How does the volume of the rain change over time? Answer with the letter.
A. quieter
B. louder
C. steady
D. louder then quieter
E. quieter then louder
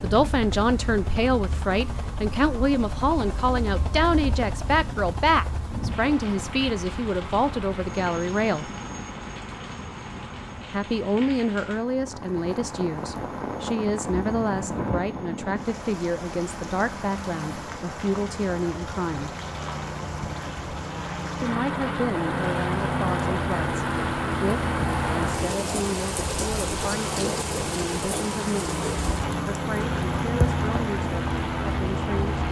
B.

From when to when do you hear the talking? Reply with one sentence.
You can hear the talking from 0.0 to 8.7 s, from 10.7 to 19.4 s, from 21.4 to 28.8 s and from 29.4 to 32.4 s.